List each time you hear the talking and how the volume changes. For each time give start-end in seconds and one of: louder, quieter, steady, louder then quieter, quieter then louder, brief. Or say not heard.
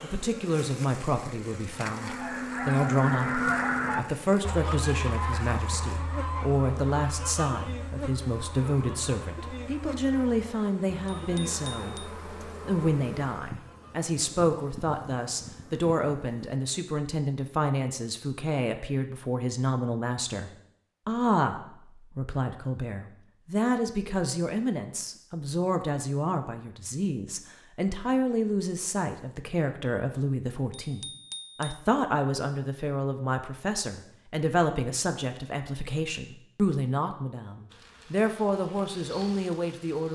0.0-40.0 steady.